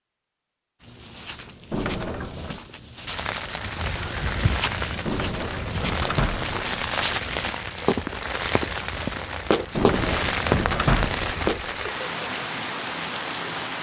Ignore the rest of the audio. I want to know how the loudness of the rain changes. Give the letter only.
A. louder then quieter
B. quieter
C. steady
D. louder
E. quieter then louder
C.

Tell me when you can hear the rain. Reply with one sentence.
The rain can be heard from 3.0 to 13.7 s.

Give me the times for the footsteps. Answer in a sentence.
You can hear the footsteps from 0.8 to 11.6 s.